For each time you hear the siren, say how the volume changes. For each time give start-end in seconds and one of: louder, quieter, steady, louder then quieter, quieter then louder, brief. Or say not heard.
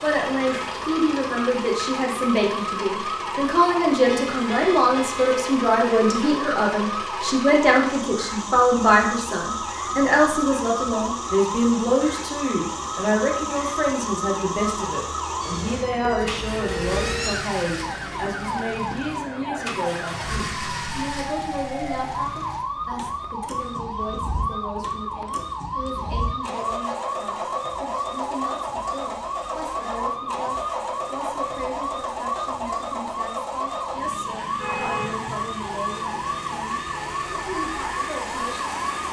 0.0-39.0 steady.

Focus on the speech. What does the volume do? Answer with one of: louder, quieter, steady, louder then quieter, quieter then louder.
quieter.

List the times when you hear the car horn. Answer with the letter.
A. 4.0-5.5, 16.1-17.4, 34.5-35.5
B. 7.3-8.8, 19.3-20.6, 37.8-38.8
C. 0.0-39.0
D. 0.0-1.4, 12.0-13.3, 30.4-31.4
A.